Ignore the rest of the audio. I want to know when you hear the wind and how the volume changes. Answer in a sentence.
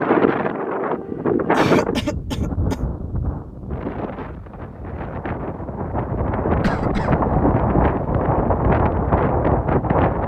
You can hear the wind from 0.0 to 10.2 s, getting quieter then louder.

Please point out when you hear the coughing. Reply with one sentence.
You can hear the coughing from 1.6 to 2.8 s and from 6.6 to 7.2 s.